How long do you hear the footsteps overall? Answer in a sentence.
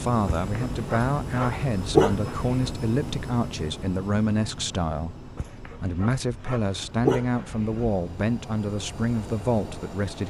The footsteps can't be heard in this clip.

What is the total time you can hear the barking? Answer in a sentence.
The barking can be heard for 5 seconds in total.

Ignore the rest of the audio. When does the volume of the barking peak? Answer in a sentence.
The volume of the barking peaks at 2 seconds.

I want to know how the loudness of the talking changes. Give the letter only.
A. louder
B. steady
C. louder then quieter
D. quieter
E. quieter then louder
B.